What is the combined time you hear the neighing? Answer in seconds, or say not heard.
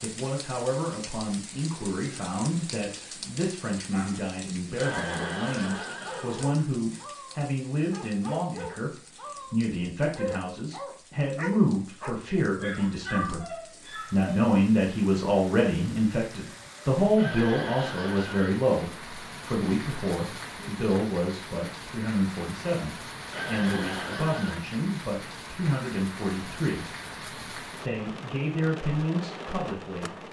5 s.